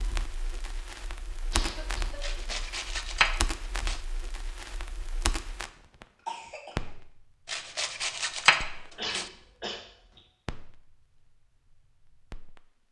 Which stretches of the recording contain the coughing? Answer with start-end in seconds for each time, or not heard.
1.5-2.7, 6.2-7.0, 8.9-10.2.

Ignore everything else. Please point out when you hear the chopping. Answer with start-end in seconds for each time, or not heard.
2.2-4.0, 7.5-9.3.